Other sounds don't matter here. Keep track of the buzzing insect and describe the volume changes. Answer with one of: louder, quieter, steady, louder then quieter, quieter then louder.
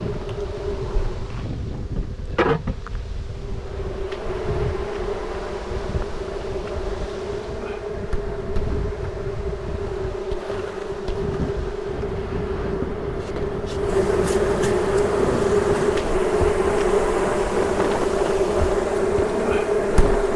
louder.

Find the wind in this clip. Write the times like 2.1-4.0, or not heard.
0.0-20.3.